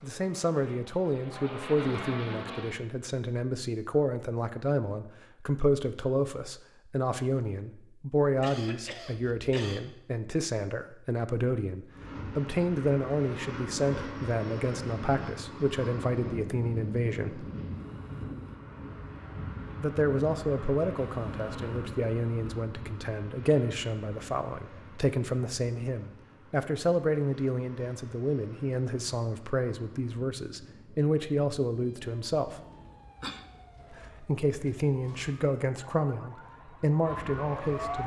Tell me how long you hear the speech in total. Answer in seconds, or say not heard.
34 s.